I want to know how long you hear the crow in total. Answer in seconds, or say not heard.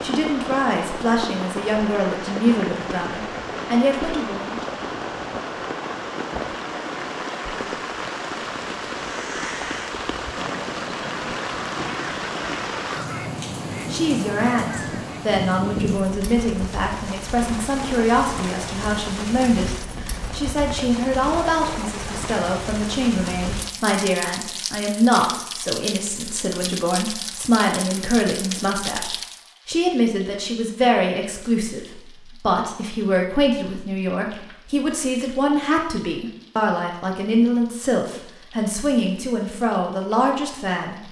6 s.